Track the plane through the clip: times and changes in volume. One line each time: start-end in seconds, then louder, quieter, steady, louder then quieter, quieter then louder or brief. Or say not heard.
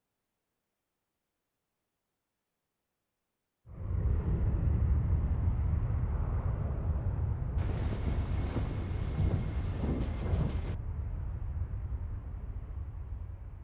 3.6-13.5 quieter.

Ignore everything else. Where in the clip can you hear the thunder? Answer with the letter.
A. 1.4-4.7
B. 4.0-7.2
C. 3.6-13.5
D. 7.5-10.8
D.